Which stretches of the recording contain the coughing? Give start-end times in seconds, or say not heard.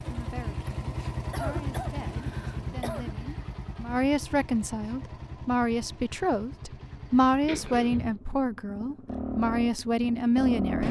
0.7-3.1, 7.5-8.2.